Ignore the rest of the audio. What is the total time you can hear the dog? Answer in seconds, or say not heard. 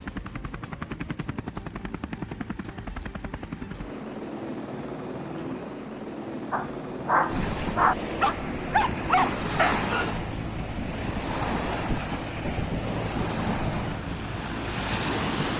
4 s.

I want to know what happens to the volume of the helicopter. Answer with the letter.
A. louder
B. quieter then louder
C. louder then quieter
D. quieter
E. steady
E.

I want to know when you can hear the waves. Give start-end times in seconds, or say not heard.
7.2-15.5.